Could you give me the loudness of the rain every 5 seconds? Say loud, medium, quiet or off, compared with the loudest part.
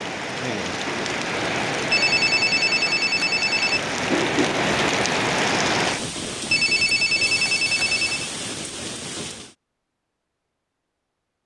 loud, loud, off.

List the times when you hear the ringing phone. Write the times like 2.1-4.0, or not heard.
1.9-3.8, 6.5-8.3.